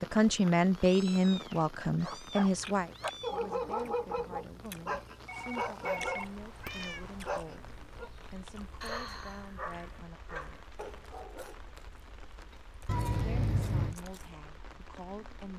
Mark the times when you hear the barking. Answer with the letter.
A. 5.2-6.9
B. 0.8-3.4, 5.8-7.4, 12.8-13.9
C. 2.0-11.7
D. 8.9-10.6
C.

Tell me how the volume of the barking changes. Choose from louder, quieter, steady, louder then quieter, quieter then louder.
quieter.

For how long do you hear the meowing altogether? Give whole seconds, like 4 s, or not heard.
5 s.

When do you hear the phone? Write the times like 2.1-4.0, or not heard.
5.2-6.9.